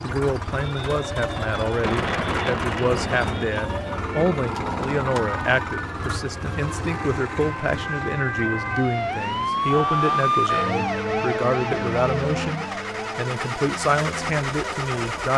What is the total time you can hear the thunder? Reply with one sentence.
The thunder can be heard for 4 seconds in total.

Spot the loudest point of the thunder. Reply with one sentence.
The volume of the thunder peaks at 2 seconds.